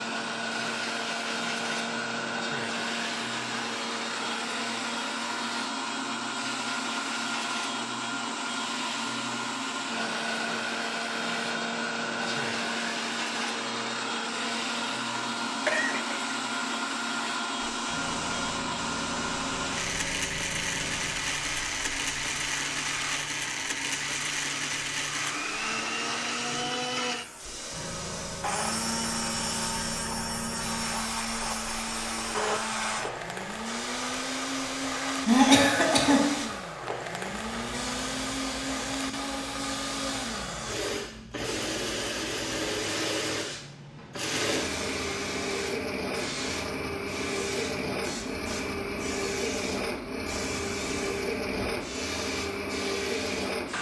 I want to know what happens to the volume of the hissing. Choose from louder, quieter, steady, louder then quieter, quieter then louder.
steady.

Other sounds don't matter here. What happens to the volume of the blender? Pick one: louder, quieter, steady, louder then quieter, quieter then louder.
steady.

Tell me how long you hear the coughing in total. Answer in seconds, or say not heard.
2 s.